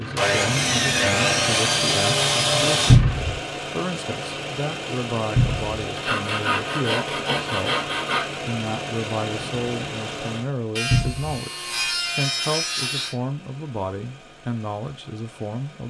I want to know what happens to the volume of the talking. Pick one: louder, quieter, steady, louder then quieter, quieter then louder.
steady.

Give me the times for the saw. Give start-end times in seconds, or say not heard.
0.1-3.0, 6.0-8.4, 10.8-13.2.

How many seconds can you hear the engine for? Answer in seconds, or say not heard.
16 s.